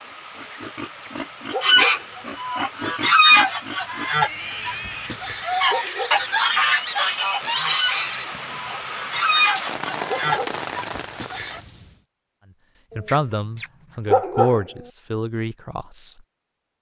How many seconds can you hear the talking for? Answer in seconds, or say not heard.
3 s.